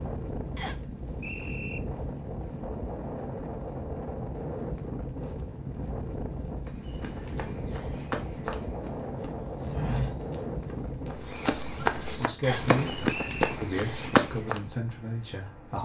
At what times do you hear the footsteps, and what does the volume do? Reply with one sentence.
You can hear the footsteps from 6.7 to 14.6 s, getting louder.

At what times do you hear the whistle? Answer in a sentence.
You can hear the whistle from 0.6 to 1.8 s and from 12.4 to 13.5 s.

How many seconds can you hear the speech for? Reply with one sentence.
You can hear the speech for 4 seconds altogether.